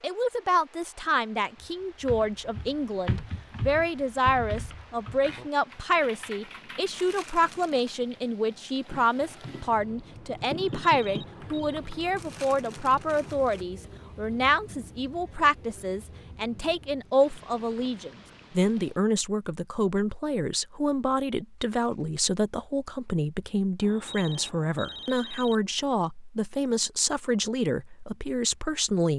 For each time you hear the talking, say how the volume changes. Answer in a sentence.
You can hear the talking from 0.0 to 29.1 s, at a steady volume.